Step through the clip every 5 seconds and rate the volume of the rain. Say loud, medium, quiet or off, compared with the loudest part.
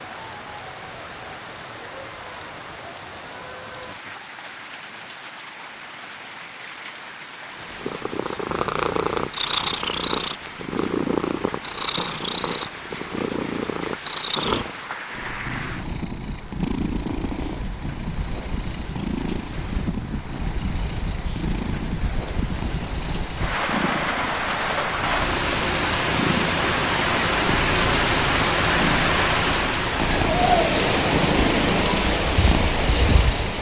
quiet, quiet, quiet, quiet, medium, loud, loud.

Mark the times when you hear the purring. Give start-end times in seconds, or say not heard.
7.6-33.5.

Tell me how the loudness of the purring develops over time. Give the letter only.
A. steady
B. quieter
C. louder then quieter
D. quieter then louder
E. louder
D.